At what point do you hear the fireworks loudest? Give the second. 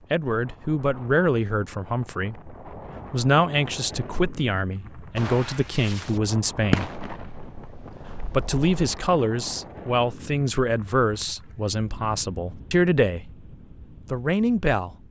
7 s.